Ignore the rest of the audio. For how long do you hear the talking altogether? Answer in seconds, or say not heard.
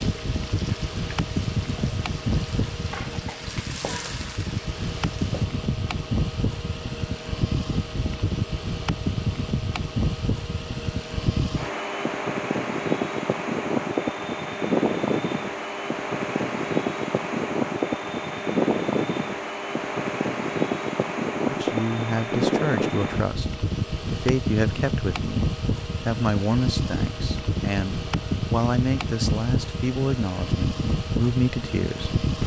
11 s.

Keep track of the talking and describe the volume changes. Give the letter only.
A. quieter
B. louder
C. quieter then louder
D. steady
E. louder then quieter
D.